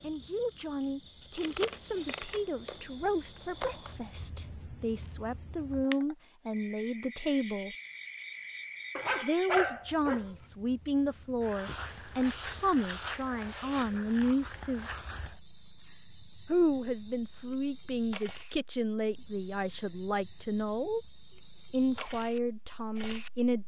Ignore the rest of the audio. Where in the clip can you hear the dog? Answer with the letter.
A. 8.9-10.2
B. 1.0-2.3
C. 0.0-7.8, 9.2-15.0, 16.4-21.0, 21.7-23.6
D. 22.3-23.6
A.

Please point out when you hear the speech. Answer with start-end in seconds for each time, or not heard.
0.0-7.8, 9.2-15.0, 16.4-21.0, 21.7-23.6.